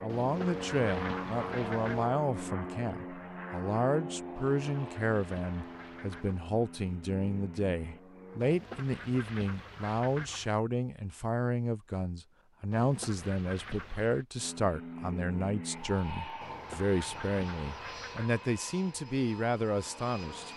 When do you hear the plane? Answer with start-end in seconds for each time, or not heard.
0.0-8.4, 14.3-20.5.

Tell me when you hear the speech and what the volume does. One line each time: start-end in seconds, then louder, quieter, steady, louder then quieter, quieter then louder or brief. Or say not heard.
0.0-20.5 steady.